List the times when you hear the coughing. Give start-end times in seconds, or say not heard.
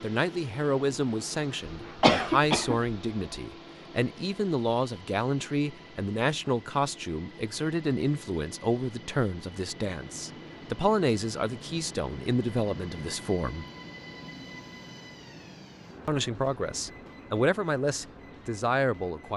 1.6-3.0.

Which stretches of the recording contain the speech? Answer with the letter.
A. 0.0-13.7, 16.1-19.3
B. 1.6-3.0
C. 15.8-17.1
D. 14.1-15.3
A.